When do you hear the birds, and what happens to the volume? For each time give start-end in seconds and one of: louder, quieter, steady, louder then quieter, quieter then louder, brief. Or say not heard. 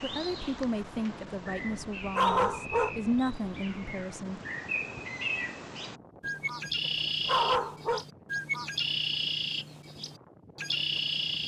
0.0-11.4 louder.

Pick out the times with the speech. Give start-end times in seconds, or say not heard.
0.0-4.4.